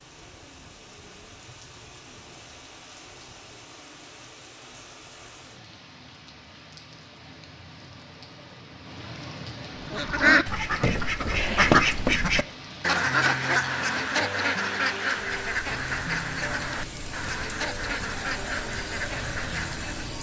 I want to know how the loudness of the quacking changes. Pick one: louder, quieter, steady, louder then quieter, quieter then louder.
quieter.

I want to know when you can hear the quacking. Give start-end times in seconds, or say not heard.
9.8-20.1.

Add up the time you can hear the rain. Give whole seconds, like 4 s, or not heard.
20 s.